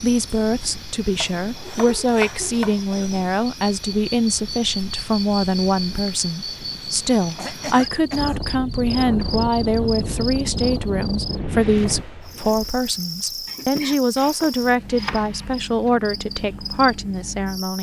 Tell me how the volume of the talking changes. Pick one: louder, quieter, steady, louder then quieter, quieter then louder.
steady.